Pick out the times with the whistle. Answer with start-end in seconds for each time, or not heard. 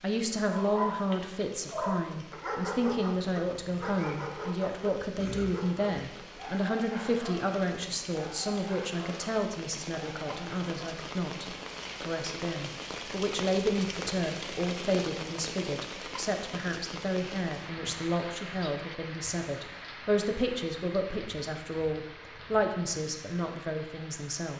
not heard.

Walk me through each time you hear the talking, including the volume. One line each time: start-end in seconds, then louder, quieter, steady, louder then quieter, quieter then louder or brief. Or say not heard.
0.0-24.5 steady.